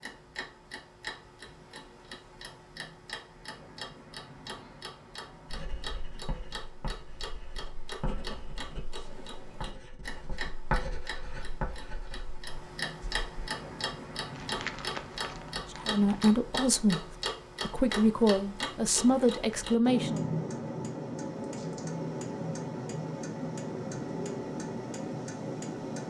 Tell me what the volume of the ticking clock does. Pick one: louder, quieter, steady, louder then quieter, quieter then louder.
louder.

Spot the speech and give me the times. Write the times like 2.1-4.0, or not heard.
15.7-20.3.